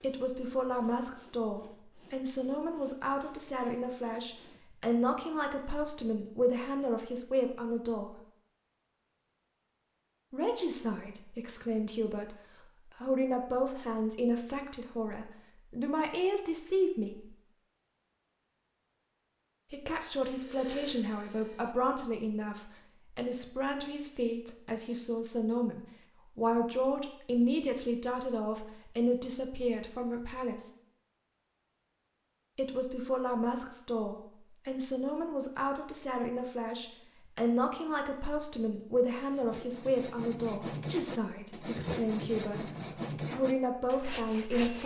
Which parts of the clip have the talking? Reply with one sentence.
You can hear the talking from 0.0 to 8.2 s, from 10.3 to 12.3 s, from 12.9 to 17.4 s, from 19.7 to 30.7 s and from 32.5 to 44.8 s.